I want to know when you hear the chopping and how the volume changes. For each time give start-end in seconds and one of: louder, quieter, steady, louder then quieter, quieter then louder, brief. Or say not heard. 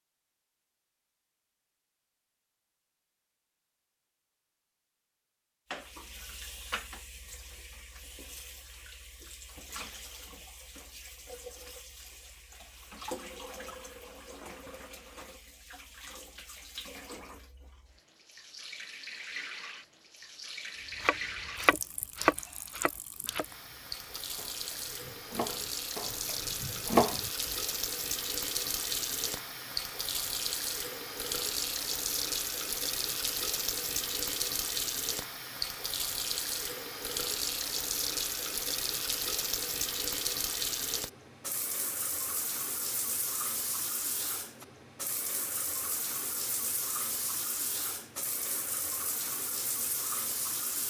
21.0-27.3 quieter then louder.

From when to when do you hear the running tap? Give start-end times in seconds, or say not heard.
5.7-50.8.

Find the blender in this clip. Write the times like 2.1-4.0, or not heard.
not heard.